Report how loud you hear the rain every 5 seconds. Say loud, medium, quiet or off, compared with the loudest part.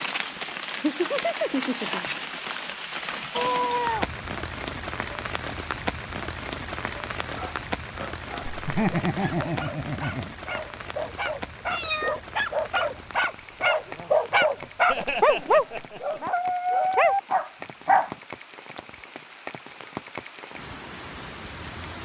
loud, loud, medium, medium, medium.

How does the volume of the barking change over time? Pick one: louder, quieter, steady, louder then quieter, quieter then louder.
louder.